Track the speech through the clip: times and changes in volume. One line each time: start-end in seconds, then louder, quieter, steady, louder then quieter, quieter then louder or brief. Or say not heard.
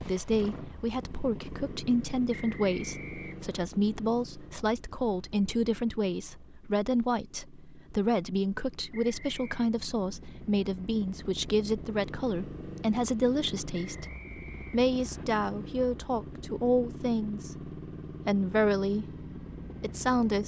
0.0-20.4 steady.